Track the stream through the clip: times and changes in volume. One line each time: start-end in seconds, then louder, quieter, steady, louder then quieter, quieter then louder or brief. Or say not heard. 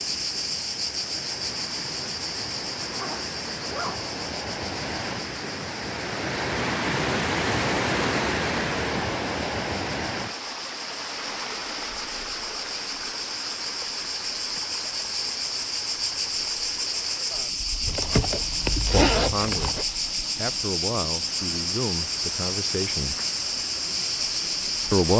0.0-25.1 louder then quieter.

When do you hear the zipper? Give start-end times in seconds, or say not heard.
2.8-4.0, 17.9-19.9.